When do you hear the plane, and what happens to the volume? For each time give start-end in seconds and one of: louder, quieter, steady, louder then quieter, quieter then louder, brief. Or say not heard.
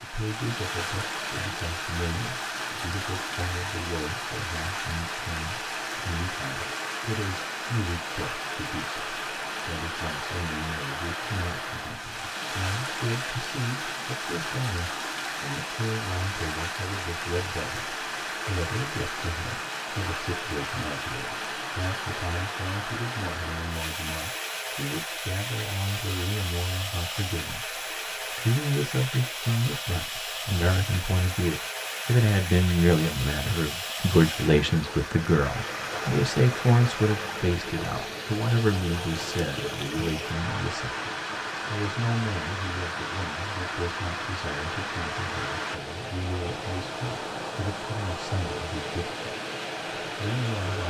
not heard.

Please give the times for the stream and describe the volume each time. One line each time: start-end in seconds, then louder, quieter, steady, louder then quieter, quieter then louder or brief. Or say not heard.
0.0-50.8 steady.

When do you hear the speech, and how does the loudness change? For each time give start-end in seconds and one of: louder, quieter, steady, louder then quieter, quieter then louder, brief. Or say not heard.
0.0-49.2 louder then quieter
50.1-50.8 brief.